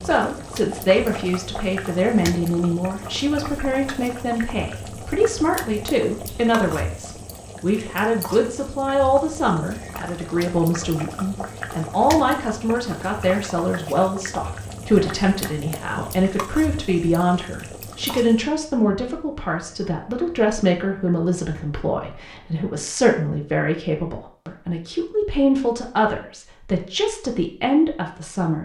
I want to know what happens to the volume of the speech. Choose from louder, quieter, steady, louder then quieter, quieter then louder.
steady.